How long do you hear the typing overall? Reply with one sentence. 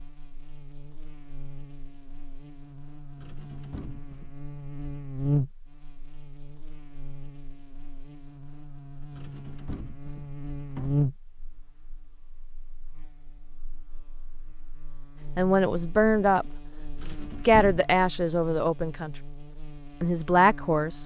The typing can't be heard in this clip.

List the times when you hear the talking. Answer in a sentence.
The talking can be heard from 15.3 to 19.1 s and from 20.0 to 21.0 s.